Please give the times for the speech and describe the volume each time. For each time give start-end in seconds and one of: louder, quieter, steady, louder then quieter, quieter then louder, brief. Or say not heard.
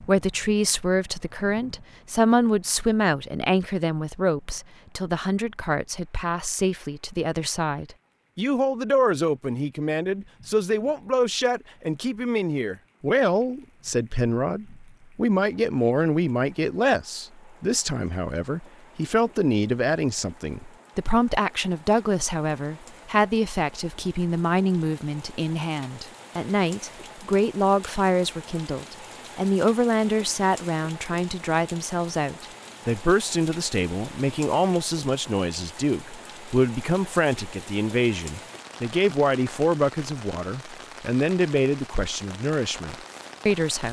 0.0-43.8 steady.